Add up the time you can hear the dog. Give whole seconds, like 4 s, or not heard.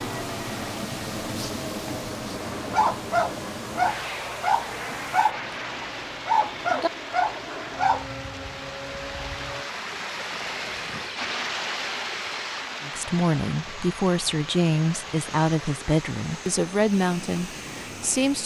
7 s.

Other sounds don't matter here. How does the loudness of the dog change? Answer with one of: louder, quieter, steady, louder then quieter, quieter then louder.
steady.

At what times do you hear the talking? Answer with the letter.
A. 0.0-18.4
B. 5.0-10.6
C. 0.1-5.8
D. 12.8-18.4
D.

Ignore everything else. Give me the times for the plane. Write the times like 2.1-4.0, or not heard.
0.0-18.4.